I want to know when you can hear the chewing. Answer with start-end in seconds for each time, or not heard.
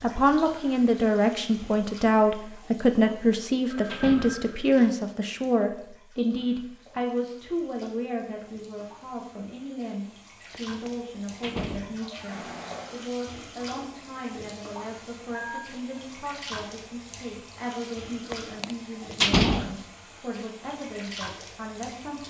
not heard.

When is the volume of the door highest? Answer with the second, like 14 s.
19 s.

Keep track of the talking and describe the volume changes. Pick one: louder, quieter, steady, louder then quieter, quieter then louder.
quieter.